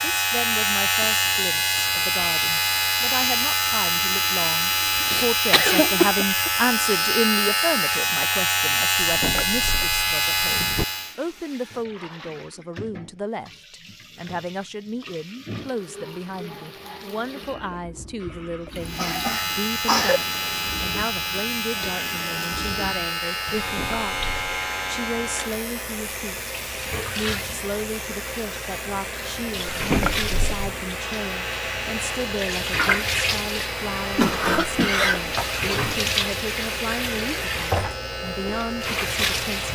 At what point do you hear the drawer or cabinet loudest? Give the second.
30 s.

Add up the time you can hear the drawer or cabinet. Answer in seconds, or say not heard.
4 s.